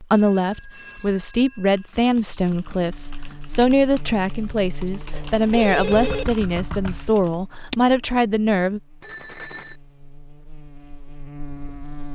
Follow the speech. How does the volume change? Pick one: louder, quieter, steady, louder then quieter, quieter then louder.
steady.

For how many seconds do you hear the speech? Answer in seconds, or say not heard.
9 s.